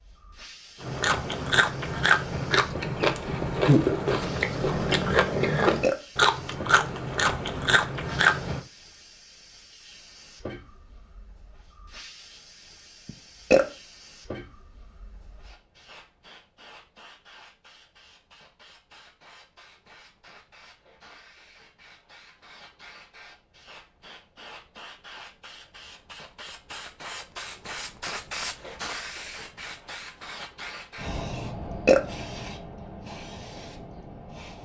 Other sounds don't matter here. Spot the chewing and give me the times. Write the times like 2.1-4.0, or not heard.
0.8-8.6.